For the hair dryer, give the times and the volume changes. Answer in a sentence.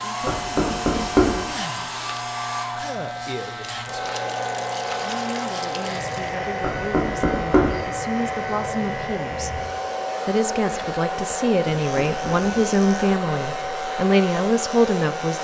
The hair dryer can be heard from 0.0 to 15.3 s, at a steady volume.